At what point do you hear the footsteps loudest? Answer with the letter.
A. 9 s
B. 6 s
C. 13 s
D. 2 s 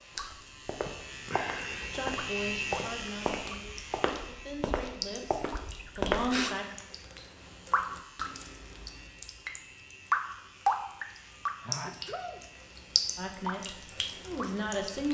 B.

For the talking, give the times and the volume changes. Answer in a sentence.
The talking can be heard from 1.9 to 6.7 s, getting quieter then louder; and briefly from 13.2 to 15.0 s.